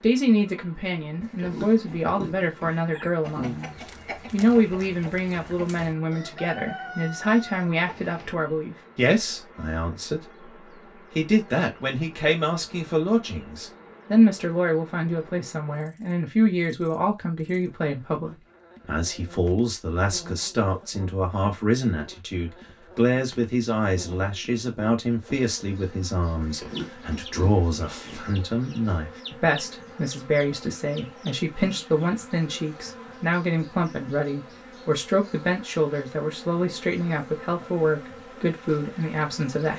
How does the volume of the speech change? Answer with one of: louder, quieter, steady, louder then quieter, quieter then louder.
steady.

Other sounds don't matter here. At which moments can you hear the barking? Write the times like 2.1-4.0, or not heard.
not heard.